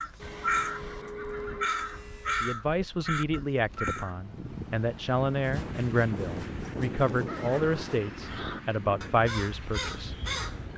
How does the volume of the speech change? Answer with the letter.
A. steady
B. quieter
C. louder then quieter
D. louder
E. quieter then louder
A.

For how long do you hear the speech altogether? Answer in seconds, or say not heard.
8 s.